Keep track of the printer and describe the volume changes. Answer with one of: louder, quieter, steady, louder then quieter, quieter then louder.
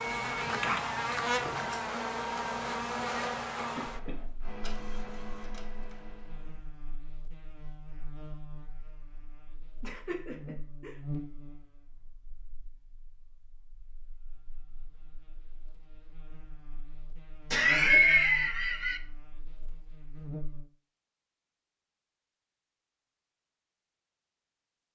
quieter.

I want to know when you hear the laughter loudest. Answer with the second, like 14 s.
18 s.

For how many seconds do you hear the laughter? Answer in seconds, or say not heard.
3 s.